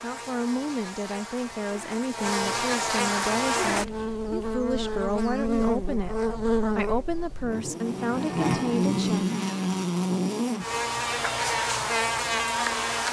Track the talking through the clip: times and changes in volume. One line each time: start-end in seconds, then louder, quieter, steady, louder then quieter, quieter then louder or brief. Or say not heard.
0.0-6.2 steady
6.8-9.2 brief.